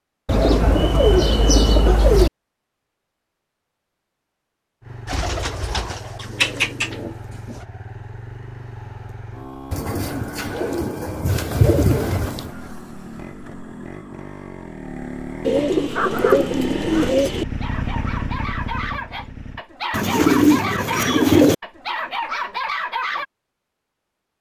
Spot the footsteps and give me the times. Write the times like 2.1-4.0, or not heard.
not heard.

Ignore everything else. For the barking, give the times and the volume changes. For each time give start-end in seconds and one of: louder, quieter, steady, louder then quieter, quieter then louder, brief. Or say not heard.
15.9-23.2 louder.